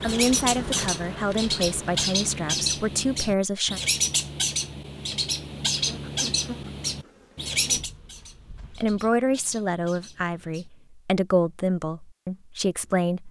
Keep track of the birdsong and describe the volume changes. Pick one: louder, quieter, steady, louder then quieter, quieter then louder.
quieter.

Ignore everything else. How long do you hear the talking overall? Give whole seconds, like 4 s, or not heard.
8 s.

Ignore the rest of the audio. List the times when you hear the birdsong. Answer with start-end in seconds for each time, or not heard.
0.0-10.7.